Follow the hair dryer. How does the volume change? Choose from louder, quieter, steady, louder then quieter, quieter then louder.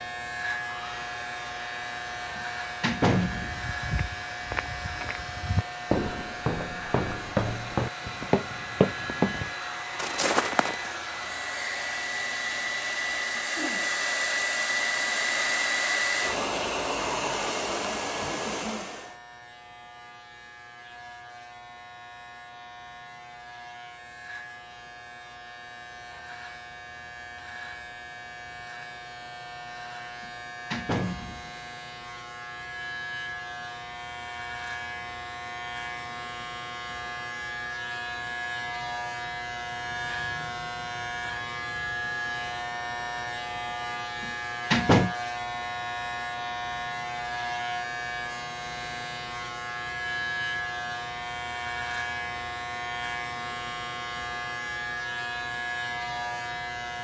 louder.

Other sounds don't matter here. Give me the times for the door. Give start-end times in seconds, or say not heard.
2.4-3.6, 30.2-31.6, 44.2-45.1.